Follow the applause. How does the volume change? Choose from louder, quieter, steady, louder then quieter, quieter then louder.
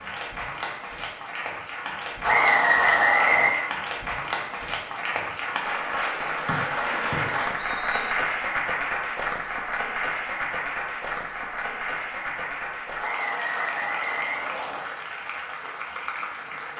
louder then quieter.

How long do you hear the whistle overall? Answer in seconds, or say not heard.
5 s.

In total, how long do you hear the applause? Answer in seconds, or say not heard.
17 s.